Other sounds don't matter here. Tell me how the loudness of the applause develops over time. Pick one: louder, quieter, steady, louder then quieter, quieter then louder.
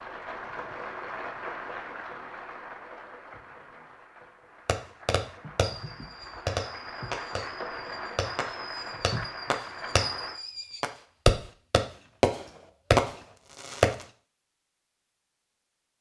quieter then louder.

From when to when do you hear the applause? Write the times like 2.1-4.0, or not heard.
0.0-10.4.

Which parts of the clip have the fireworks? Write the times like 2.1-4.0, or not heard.
4.7-14.1.